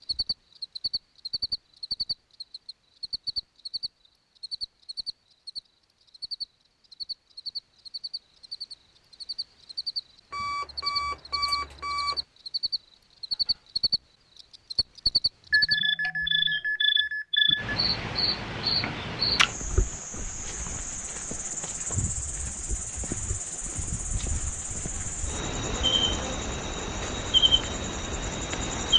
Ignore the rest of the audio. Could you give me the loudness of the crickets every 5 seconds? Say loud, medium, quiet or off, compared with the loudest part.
medium, medium, medium, loud, medium, loud.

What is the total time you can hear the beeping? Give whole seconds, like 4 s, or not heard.
4 s.